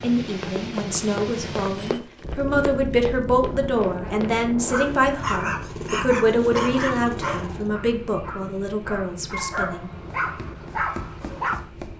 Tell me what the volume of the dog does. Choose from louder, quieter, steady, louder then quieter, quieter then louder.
quieter then louder.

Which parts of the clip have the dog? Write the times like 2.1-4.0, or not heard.
4.7-11.6.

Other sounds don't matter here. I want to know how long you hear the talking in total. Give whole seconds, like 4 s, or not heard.
10 s.